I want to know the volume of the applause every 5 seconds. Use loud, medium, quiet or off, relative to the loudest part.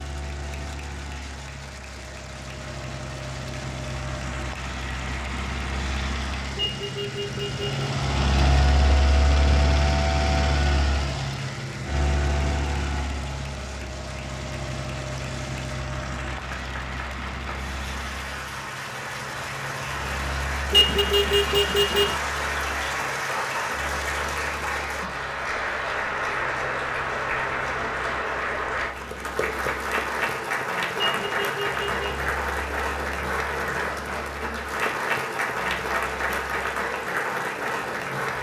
quiet, quiet, quiet, medium, loud, loud, loud, loud.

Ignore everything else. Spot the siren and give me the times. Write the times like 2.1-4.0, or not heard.
not heard.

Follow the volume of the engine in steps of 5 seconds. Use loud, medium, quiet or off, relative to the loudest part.
medium, loud, loud, medium, quiet, quiet, quiet, quiet.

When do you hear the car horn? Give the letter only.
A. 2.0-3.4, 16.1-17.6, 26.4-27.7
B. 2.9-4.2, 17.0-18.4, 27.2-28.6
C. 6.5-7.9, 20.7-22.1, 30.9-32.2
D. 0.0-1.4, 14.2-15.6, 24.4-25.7
C.